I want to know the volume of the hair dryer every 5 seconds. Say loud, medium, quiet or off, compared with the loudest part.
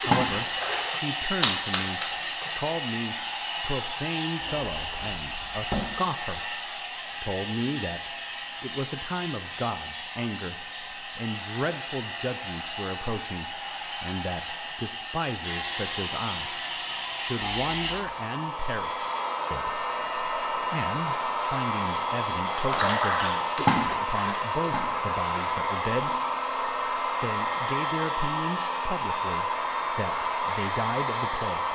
loud, medium, medium, loud, loud, loud, loud.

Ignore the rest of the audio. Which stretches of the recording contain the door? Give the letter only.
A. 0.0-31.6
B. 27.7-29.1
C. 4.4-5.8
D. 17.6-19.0
C.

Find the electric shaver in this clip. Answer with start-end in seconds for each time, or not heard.
not heard.